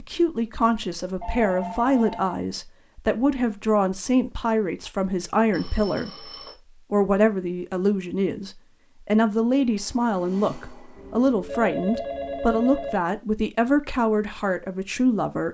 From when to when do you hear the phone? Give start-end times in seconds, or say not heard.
1.2-2.4, 5.5-6.5, 10.9-13.0.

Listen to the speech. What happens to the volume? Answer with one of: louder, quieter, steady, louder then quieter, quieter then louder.
steady.